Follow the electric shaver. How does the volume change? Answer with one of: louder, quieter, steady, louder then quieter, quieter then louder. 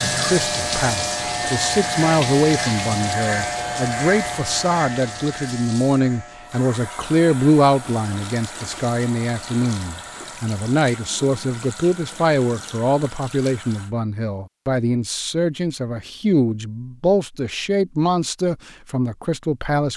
quieter.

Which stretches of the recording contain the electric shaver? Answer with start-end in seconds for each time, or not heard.
0.0-10.4.